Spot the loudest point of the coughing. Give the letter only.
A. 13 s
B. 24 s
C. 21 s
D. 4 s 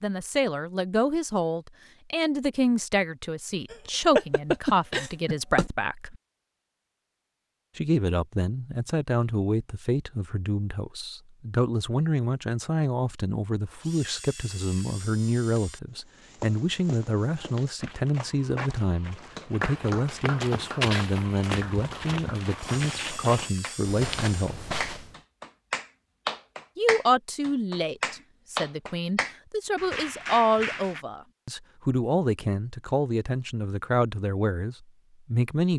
D.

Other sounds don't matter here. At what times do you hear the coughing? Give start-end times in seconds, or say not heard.
3.7-5.7.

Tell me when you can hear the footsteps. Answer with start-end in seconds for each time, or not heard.
15.8-25.1.